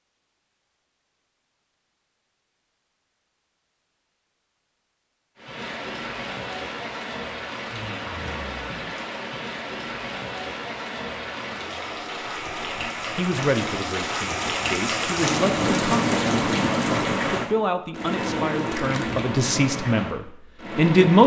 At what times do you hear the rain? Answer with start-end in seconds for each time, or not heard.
5.3-21.2.